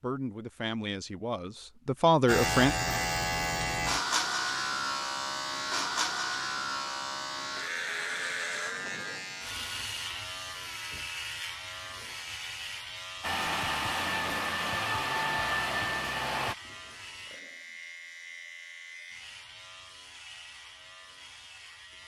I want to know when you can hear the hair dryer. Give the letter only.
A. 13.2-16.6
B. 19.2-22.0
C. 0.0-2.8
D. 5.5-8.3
A.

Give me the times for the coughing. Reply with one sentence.
You can't hear the coughing here.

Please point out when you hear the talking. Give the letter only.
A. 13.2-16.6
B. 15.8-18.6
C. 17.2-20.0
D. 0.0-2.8
D.